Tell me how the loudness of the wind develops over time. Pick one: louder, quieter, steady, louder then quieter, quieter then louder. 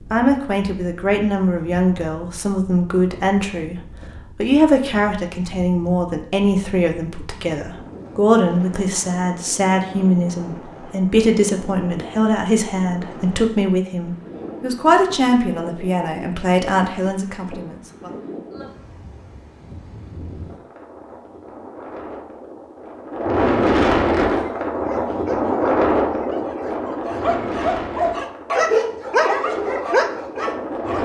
louder.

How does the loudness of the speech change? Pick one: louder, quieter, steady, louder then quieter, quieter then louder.
steady.